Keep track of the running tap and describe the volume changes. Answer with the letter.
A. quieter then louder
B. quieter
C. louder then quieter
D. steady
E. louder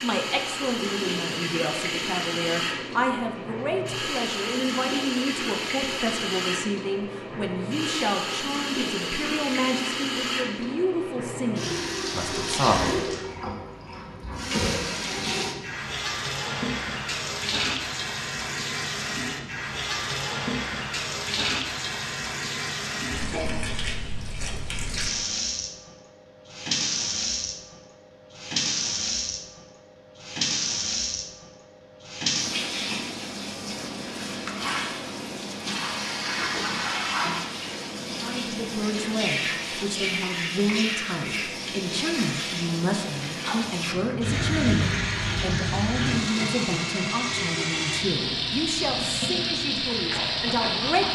D.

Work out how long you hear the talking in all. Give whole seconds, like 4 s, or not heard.
26 s.